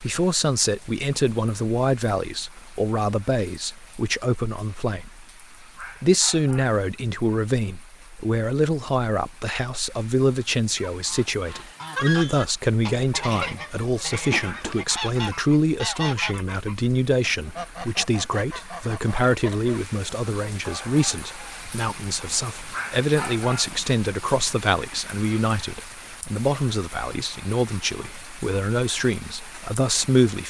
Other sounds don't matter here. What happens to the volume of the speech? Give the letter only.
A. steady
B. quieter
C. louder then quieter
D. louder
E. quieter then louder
A.